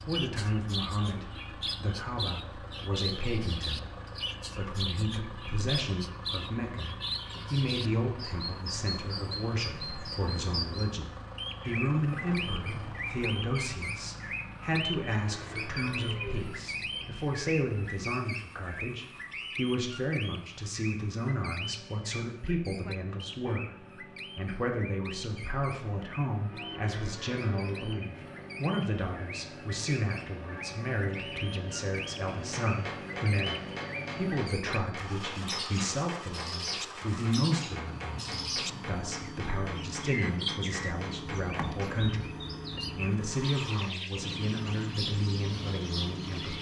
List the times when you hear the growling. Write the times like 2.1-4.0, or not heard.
not heard.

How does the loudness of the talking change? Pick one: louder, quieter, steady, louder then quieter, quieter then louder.
steady.